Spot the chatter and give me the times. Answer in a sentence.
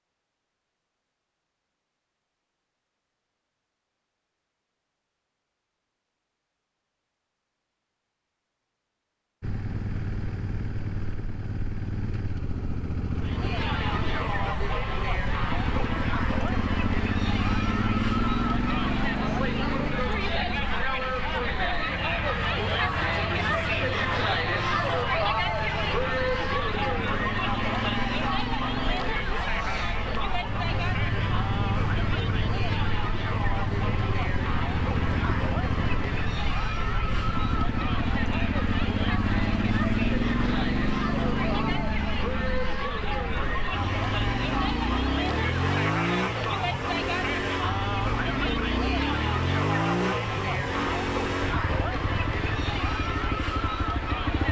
You can hear the chatter from 13.2 to 54.4 s.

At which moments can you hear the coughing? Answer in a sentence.
The coughing can't be heard in this clip.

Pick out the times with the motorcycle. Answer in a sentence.
The motorcycle can be heard from 9.4 to 54.4 s.